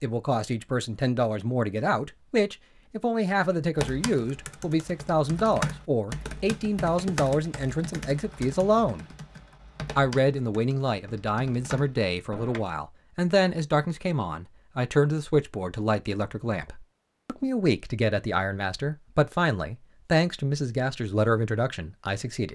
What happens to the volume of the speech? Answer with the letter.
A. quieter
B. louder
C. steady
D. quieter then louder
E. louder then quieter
C.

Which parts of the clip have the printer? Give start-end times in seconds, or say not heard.
not heard.